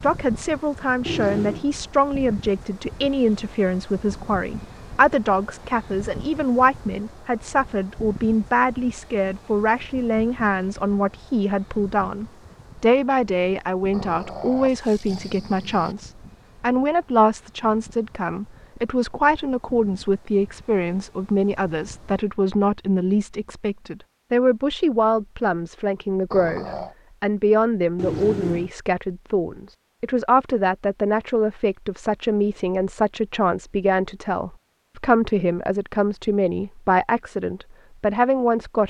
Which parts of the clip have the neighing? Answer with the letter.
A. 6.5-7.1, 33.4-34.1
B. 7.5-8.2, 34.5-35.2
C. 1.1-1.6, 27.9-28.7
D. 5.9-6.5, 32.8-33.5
C.